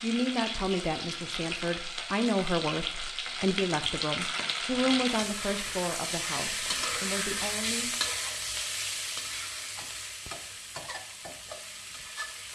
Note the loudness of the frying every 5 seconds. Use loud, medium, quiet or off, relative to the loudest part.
loud, loud, medium.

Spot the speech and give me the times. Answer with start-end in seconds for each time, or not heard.
0.0-8.0.